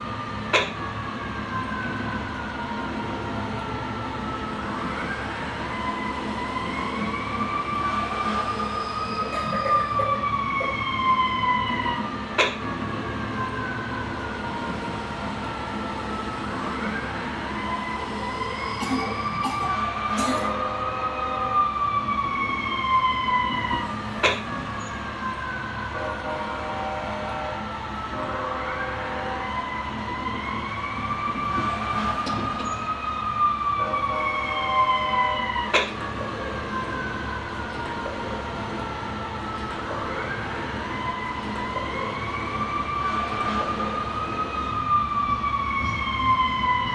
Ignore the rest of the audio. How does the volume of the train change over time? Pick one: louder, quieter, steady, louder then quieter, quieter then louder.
steady.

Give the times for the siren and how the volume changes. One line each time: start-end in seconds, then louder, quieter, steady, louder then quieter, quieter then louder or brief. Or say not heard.
0.0-46.9 steady.